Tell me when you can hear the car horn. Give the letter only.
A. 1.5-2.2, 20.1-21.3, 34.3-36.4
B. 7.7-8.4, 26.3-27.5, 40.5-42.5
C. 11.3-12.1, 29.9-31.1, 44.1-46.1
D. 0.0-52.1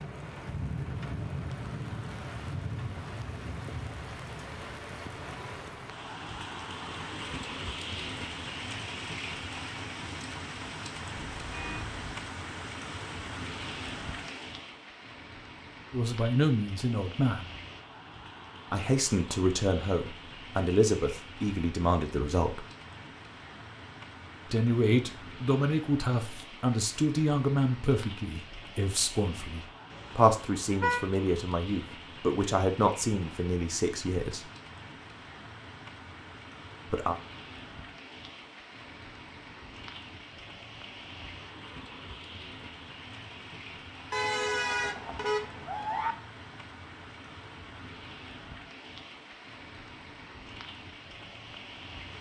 C.